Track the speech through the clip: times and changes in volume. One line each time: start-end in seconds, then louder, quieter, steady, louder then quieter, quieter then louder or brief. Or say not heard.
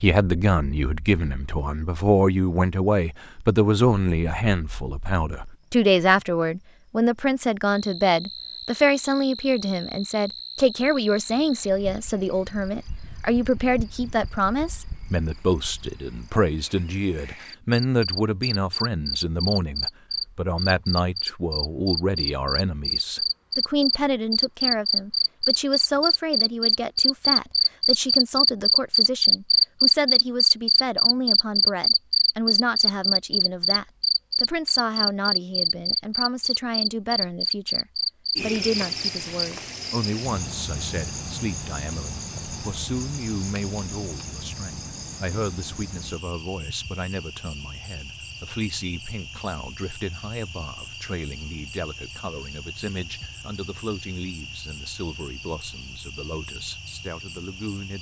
0.0-57.9 quieter.